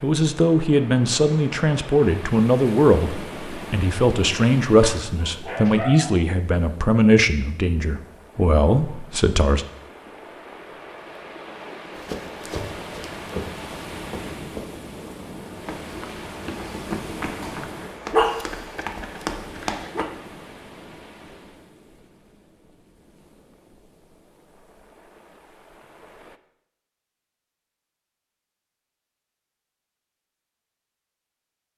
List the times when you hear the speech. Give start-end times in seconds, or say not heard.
0.0-9.7.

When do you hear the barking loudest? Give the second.
18 s.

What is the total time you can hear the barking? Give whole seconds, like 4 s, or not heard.
4 s.